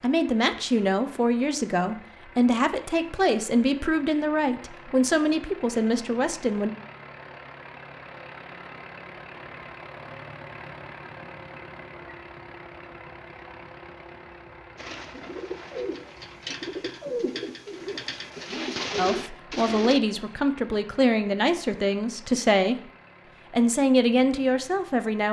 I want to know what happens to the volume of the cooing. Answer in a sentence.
The volume of the cooing goes up.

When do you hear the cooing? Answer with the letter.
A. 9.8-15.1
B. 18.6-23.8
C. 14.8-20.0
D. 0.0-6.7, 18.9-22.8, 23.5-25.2
C.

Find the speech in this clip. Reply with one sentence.
The speech can be heard from 0.0 to 6.7 s, from 18.9 to 22.8 s and from 23.5 to 25.2 s.